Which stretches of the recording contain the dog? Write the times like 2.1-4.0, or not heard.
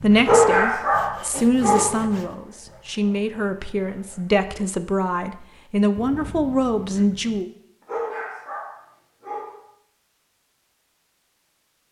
0.2-1.9, 7.8-9.6.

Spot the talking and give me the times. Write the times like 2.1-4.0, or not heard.
0.0-7.5.